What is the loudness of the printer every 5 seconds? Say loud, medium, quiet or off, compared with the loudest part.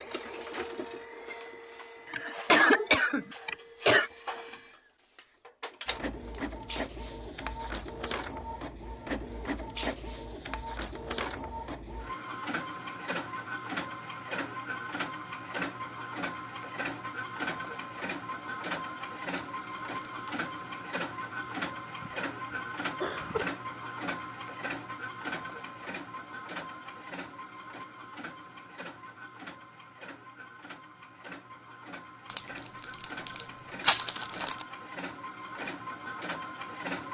loud, loud, loud, loud, loud, medium, medium, loud.